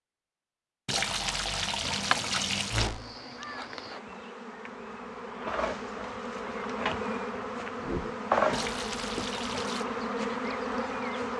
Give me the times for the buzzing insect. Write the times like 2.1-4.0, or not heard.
1.8-11.3.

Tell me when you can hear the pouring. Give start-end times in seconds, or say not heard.
0.8-2.9, 8.5-9.8.